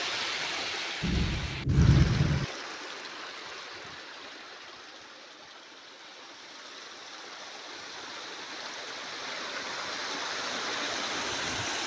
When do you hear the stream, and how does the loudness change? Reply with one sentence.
You can hear the stream from 0.0 to 11.8 s, getting quieter then louder.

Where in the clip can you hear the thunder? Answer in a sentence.
The thunder can be heard from 1.0 to 2.5 s.